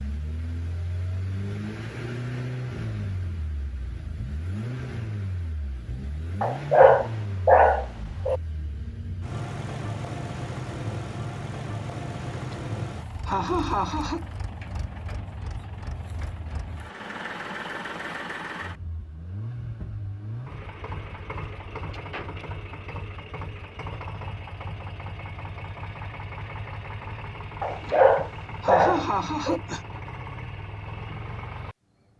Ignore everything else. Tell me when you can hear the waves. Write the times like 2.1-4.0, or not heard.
not heard.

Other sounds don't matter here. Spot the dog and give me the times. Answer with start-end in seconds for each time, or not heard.
6.4-8.4, 27.6-29.6.